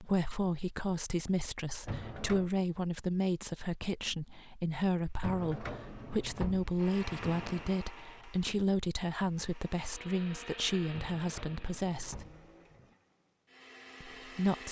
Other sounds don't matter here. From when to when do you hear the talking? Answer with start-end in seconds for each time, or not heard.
0.0-12.2, 14.0-14.6.